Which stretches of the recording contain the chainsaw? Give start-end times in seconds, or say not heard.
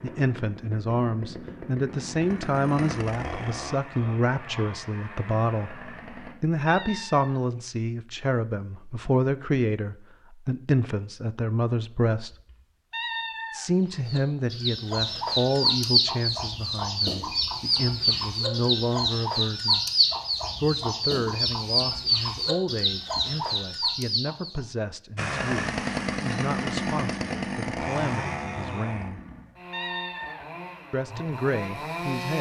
0.0-6.3, 25.1-32.3.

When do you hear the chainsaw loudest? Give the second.
26 s.